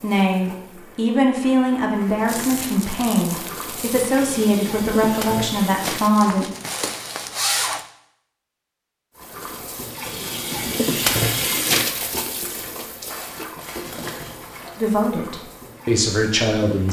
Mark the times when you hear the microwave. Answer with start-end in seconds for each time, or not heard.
not heard.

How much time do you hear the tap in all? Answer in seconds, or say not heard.
14 s.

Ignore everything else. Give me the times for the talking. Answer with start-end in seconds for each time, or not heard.
0.0-6.5, 14.8-16.8.